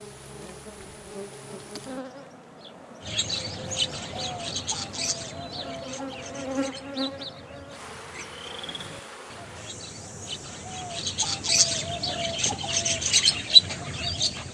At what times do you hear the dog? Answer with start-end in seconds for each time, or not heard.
not heard.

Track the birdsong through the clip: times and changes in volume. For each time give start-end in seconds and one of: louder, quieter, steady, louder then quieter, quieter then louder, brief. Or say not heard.
3.0-14.5 quieter then louder.